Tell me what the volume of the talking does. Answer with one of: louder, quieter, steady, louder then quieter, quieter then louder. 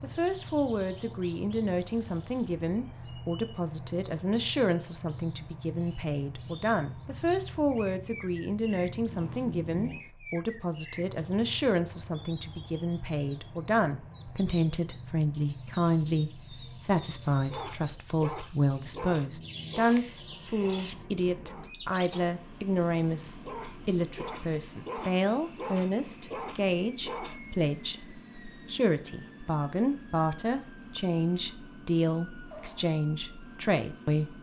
steady.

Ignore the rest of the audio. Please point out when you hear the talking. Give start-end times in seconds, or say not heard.
0.0-34.3.